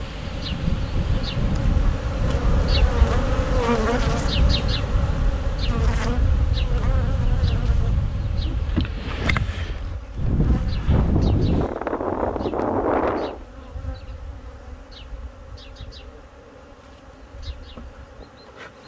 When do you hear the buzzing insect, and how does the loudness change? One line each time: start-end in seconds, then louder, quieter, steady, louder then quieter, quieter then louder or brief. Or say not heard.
0.0-18.8 quieter.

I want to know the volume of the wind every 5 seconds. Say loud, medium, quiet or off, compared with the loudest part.
medium, medium, loud, off.